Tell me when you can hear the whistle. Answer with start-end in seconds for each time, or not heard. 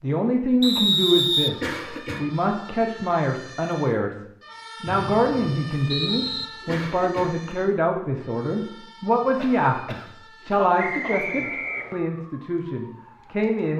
0.6-2.0, 4.8-6.5, 10.8-12.0.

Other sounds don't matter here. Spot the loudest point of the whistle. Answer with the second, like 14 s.
1 s.